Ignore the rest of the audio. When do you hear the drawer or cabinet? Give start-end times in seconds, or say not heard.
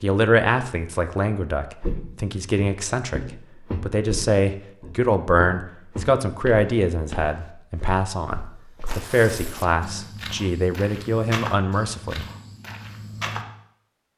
not heard.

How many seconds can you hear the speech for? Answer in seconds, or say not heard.
12 s.